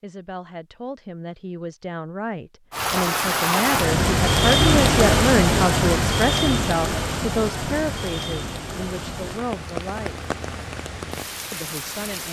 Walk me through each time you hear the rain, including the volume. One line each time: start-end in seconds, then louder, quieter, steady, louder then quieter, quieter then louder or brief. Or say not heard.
2.7-12.2 quieter.